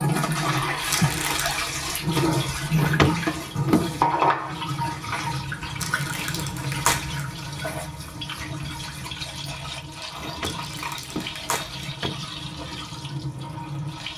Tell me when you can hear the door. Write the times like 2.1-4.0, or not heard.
2.7-4.0, 10.2-12.4.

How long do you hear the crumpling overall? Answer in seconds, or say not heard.
4 s.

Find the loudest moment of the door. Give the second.
3 s.